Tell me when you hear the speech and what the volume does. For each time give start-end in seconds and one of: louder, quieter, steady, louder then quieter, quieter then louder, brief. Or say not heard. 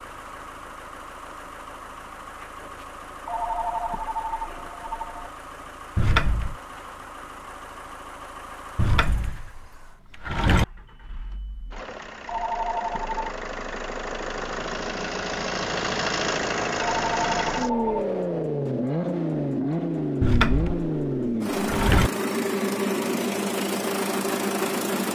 not heard.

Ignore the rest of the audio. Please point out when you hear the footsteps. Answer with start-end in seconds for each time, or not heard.
not heard.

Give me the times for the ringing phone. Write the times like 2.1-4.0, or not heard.
3.2-5.3, 12.2-13.2, 16.8-18.1.